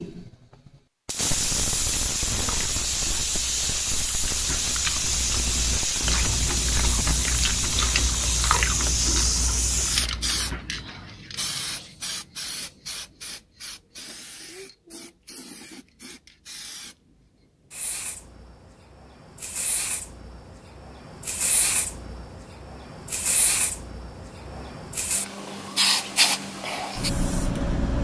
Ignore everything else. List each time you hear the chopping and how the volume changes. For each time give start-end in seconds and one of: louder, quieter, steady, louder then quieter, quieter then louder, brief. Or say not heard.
not heard.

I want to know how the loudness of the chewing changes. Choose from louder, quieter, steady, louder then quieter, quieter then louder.
louder then quieter.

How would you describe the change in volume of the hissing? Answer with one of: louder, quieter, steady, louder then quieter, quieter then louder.
quieter then louder.